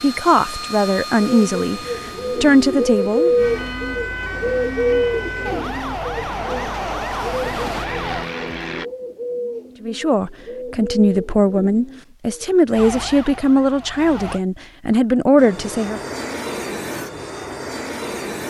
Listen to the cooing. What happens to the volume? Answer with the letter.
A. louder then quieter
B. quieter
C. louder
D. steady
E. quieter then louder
B.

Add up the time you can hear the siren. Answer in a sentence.
You can hear the siren for 7 seconds altogether.